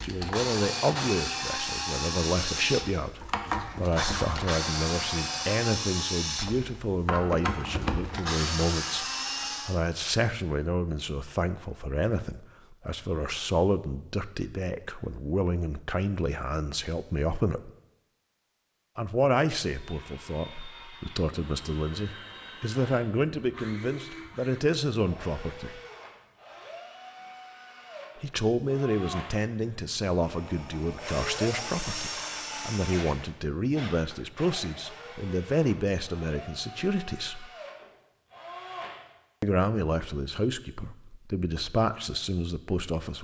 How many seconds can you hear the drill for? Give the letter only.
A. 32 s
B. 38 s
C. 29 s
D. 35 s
C.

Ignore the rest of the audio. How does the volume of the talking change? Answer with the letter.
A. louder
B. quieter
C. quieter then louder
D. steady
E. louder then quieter
D.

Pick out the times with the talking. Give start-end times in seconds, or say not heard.
0.0-17.7, 18.9-25.8, 28.2-37.5, 39.4-43.1.